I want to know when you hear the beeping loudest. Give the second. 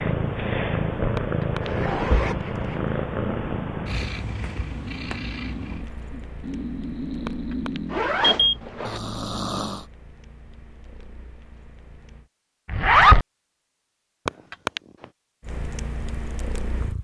8 s.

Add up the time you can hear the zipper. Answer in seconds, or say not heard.
3 s.